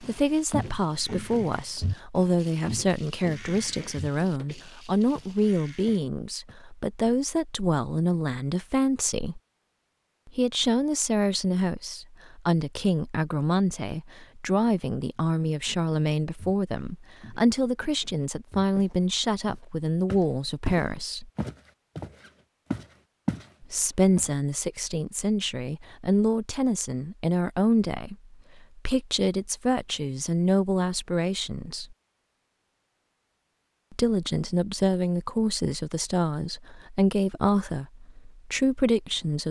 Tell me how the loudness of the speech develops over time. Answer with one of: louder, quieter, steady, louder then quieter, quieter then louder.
steady.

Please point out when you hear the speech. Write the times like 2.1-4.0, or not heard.
0.0-9.4, 10.2-21.3, 23.6-31.9, 33.9-39.4.